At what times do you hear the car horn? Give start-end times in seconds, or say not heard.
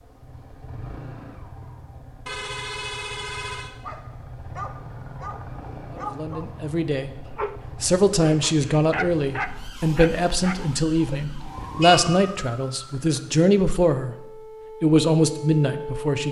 2.2-3.7, 11.6-12.2.